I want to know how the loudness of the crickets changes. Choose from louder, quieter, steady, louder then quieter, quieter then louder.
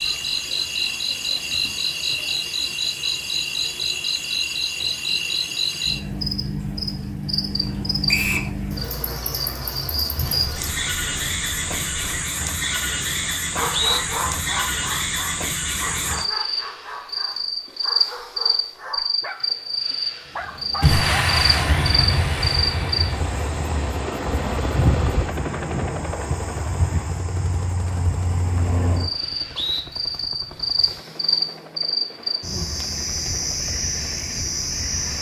steady.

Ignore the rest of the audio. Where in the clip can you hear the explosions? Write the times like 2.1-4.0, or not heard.
10.2-12.2, 20.8-23.8.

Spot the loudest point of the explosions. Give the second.
21 s.